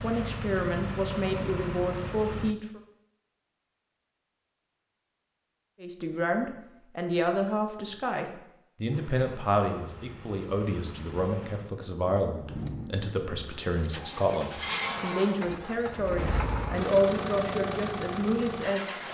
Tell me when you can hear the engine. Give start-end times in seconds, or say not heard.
0.0-2.5, 8.9-19.0.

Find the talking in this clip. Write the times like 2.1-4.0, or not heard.
0.0-2.8, 5.8-18.9.